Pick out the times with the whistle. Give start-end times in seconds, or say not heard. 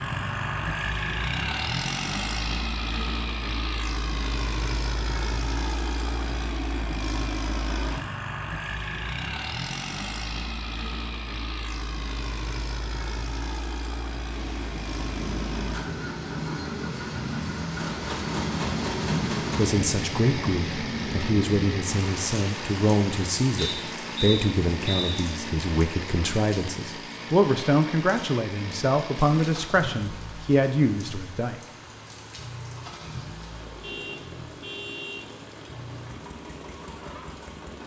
23.6-25.3.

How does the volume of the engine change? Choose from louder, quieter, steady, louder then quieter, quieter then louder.
quieter.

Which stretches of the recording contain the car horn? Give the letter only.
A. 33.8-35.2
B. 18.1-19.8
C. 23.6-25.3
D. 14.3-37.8
A.